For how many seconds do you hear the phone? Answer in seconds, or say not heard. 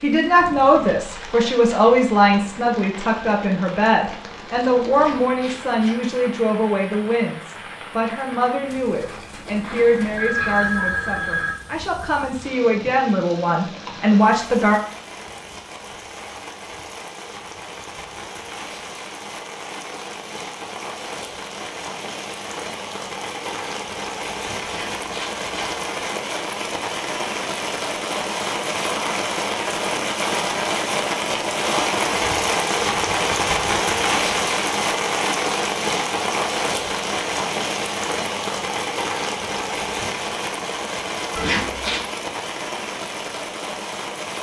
2 s.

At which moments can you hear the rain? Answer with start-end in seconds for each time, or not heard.
0.0-44.3.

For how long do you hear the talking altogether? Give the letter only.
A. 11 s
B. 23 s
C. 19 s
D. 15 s
D.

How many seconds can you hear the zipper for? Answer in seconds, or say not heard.
3 s.